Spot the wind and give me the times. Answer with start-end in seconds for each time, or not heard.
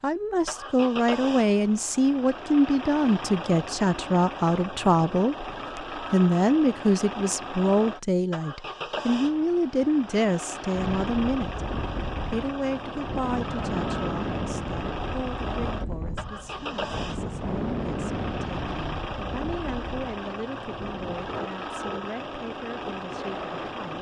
10.7-23.9.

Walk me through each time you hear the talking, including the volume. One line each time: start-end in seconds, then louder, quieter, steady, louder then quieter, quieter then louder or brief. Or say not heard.
0.0-23.9 quieter.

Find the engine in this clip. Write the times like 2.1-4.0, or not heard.
0.0-23.9.